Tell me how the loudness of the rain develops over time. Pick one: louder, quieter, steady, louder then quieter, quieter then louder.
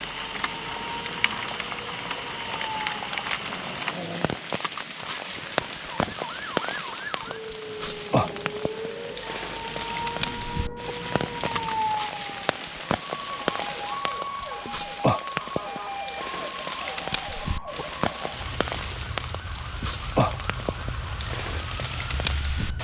steady.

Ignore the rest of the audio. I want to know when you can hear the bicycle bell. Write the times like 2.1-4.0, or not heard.
not heard.